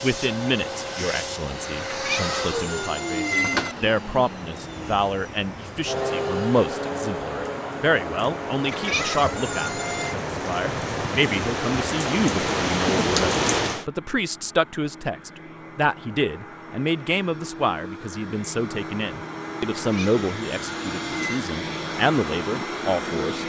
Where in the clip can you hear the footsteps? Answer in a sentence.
You can't hear the footsteps here.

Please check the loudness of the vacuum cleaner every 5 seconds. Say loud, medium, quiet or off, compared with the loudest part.
loud, loud, quiet, medium, loud.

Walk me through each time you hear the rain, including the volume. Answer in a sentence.
The rain can be heard from 0.0 to 13.8 s, getting louder.